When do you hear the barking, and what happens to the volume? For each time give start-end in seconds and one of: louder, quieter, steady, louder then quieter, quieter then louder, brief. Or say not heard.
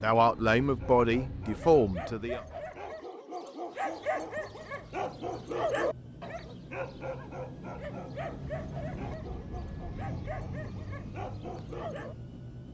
0.6-12.2 louder then quieter.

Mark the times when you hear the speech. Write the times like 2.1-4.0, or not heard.
0.0-2.4.